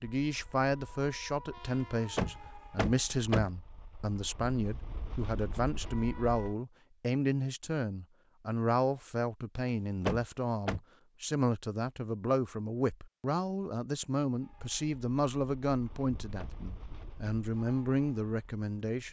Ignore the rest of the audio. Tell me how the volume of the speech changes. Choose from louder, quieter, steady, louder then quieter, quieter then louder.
steady.